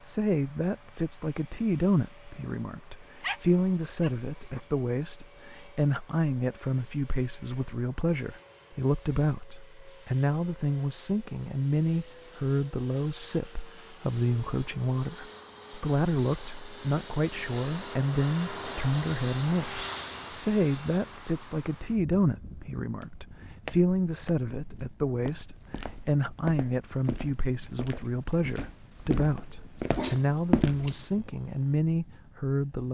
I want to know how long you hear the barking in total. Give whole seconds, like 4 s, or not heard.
3 s.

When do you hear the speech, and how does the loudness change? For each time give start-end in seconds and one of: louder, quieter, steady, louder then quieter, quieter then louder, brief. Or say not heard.
0.0-32.8 steady.